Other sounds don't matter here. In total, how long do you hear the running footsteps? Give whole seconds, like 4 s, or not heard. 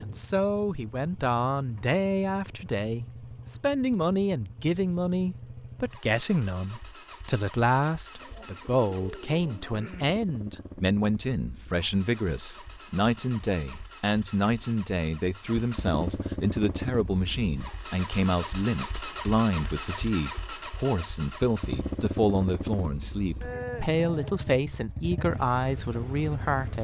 not heard.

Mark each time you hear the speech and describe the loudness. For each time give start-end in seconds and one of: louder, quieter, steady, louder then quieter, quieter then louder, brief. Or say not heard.
0.0-26.7 steady.